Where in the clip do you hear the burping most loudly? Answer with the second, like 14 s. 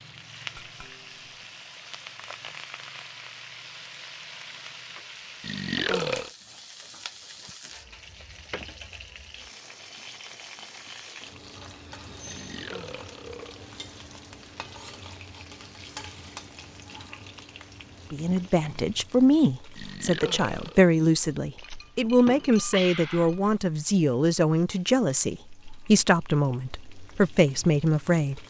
6 s.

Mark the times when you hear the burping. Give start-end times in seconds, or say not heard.
5.4-6.3, 12.2-13.7, 19.8-20.9.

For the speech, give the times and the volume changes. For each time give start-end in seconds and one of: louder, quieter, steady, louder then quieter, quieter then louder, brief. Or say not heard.
18.1-28.4 steady.